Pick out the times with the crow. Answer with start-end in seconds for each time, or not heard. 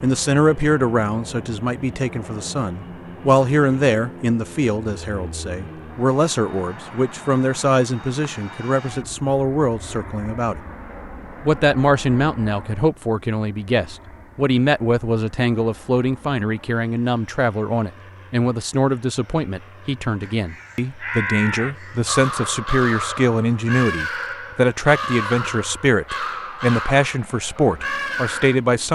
20.2-28.6.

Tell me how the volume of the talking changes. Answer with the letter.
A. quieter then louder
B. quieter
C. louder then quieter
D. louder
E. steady
E.